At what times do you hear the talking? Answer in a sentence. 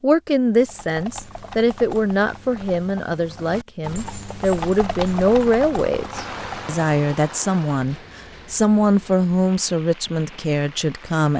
The talking can be heard from 0.0 to 11.3 s.